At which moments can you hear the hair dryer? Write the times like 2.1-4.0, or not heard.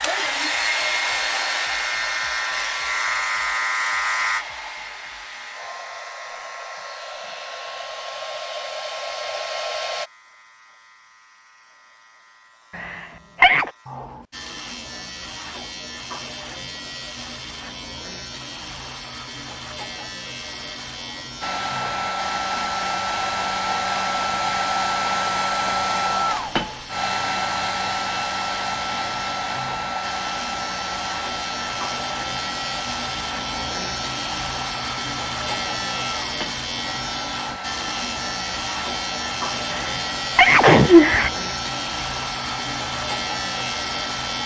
0.0-10.1, 21.4-44.4.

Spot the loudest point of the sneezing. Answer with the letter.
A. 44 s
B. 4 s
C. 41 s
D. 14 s
C.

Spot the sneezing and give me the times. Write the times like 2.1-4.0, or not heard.
12.8-13.7, 39.7-41.3.